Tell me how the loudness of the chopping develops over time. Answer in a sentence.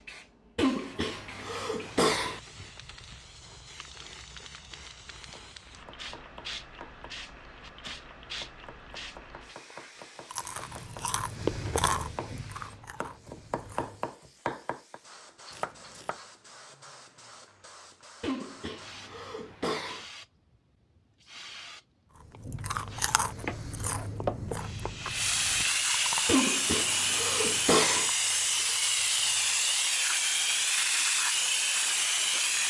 The volume of the chopping goes up.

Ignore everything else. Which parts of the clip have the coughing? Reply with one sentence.
The coughing can be heard from 0.6 to 2.4 s, from 18.2 to 20.1 s and from 26.2 to 28.1 s.